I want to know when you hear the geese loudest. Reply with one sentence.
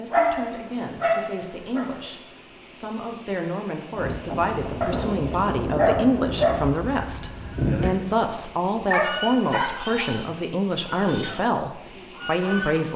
The loudest moment of the geese is at 8 seconds.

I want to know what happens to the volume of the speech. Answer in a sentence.
The loudness of the speech goes up.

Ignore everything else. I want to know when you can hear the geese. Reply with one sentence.
The geese can be heard from 4.0 to 12.9 s.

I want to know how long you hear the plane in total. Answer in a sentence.
You can't hear the plane here.